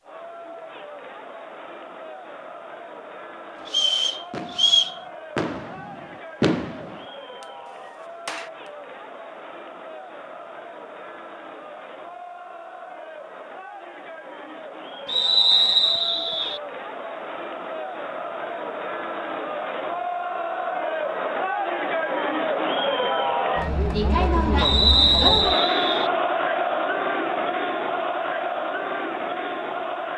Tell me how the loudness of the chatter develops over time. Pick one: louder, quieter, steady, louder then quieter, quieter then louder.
louder.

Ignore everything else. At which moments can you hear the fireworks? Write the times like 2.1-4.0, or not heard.
3.5-7.5, 8.2-8.7.